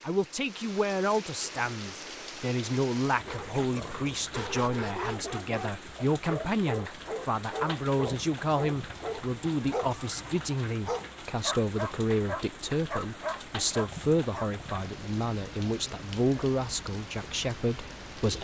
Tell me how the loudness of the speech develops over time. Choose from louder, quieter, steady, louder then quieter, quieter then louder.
steady.